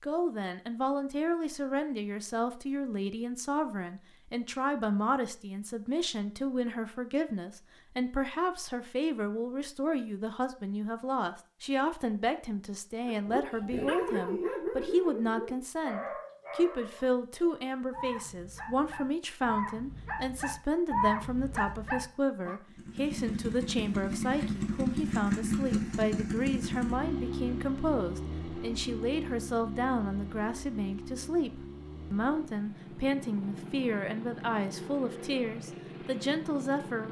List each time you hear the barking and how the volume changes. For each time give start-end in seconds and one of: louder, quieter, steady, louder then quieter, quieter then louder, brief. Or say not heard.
13.1-22.6 quieter then louder.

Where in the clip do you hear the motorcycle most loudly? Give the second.
25 s.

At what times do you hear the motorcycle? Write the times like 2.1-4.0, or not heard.
22.6-37.0.